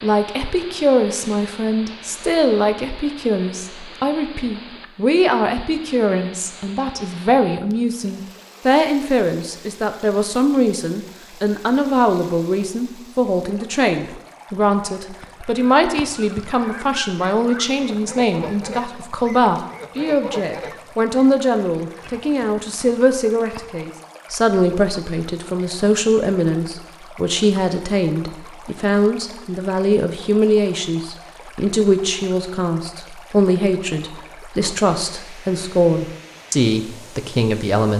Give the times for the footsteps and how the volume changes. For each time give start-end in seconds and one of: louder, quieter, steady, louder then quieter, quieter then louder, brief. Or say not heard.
not heard.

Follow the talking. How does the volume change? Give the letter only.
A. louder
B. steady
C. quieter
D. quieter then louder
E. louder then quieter
B.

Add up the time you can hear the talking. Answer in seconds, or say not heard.
38 s.